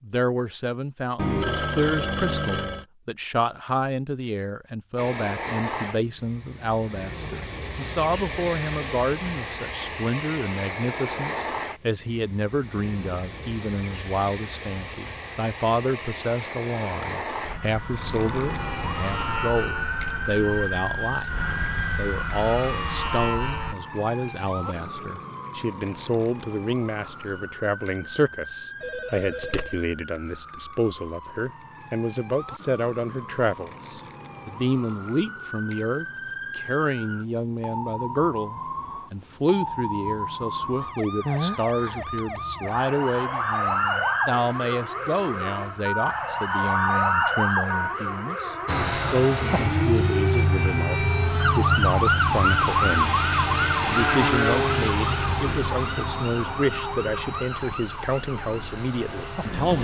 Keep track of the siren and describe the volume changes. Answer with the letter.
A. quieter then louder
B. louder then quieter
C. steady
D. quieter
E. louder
A.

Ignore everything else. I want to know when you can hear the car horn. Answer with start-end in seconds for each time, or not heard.
not heard.